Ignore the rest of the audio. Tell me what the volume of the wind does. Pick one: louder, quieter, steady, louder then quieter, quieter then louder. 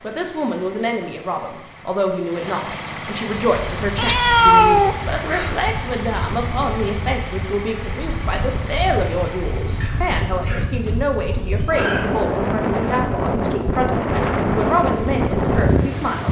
louder.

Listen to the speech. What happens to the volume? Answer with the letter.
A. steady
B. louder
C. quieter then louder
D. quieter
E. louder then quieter
A.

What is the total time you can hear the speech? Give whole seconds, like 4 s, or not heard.
16 s.